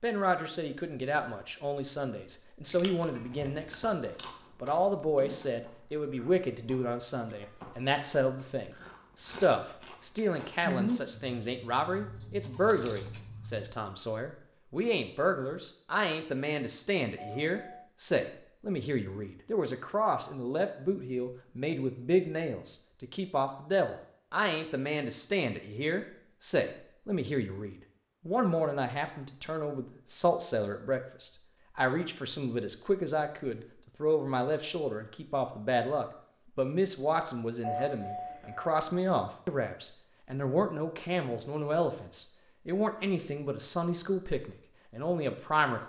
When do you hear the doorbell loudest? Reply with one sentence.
The volume of the doorbell peaks at 38 seconds.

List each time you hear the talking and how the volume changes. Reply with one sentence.
The talking can be heard from 0.0 to 45.8 s, at a steady volume.